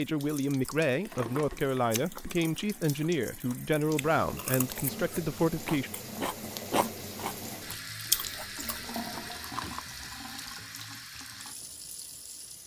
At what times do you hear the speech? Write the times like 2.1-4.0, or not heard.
0.0-5.9.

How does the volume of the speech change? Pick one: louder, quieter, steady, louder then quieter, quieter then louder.
steady.